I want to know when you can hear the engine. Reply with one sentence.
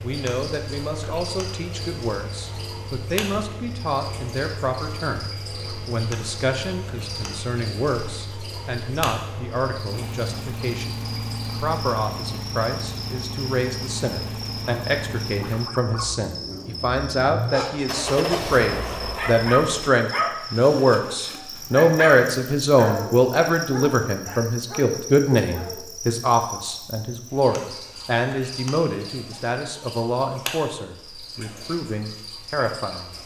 The engine can be heard from 0.0 to 19.9 s.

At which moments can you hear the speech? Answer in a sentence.
The speech can be heard from 0.0 to 33.2 s.